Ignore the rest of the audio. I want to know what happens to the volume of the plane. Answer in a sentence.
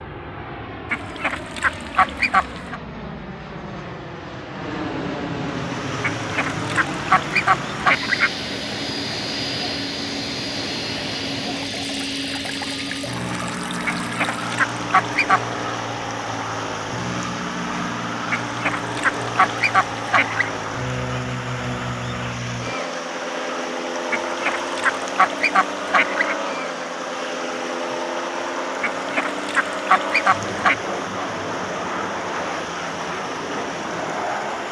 The volume of the plane stays about the same.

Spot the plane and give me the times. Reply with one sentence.
The plane can be heard from 0.0 to 34.6 s.